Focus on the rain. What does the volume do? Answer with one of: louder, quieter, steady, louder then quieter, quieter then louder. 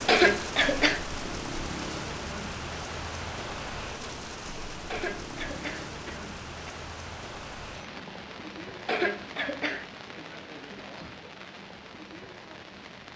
quieter.